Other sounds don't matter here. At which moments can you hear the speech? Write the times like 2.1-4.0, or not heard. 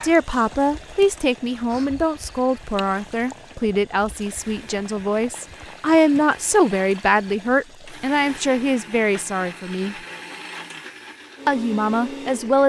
0.0-9.9, 11.4-12.6.